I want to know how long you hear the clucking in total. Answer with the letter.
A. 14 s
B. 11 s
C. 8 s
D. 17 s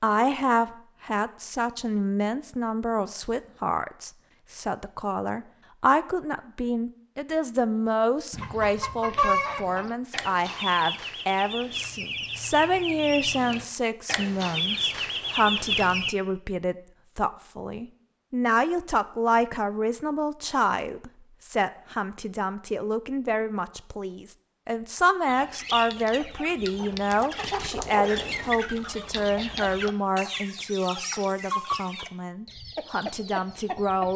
D.